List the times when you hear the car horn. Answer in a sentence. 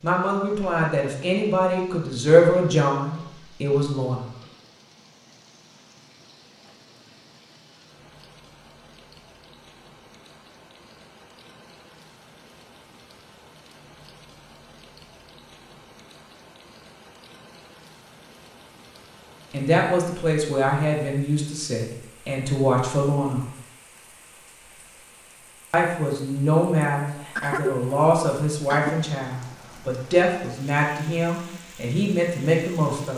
You can't hear the car horn here.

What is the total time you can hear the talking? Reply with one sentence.
You can hear the talking for 16 seconds altogether.